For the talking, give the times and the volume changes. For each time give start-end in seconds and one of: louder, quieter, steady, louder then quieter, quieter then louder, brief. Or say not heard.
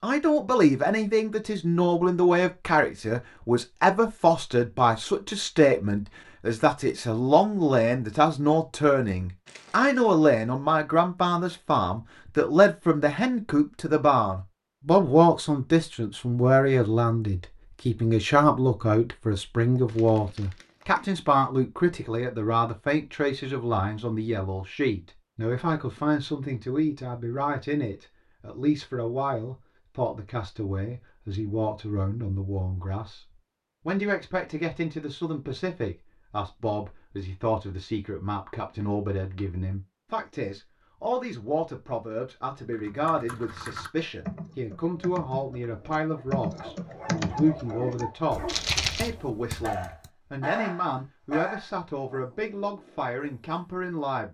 0.0-54.2 quieter.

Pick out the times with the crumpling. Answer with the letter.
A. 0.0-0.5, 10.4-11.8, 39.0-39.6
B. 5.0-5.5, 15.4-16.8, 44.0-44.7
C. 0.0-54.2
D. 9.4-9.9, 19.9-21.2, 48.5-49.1
D.